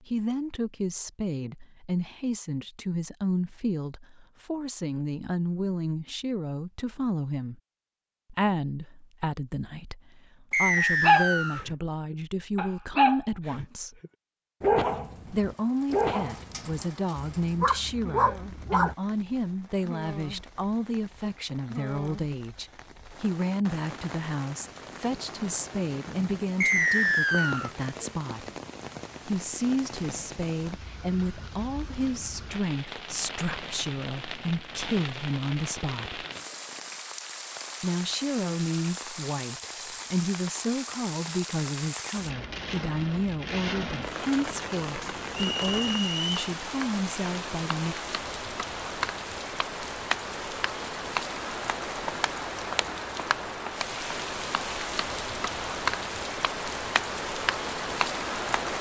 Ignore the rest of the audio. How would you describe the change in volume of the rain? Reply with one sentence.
The volume of the rain goes up.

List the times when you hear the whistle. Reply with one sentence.
You can hear the whistle from 10.5 to 11.7 s, from 26.6 to 27.7 s and from 45.4 to 46.3 s.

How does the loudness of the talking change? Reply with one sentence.
The loudness of the talking stays about the same.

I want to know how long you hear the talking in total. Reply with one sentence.
You can hear the talking for 44 seconds altogether.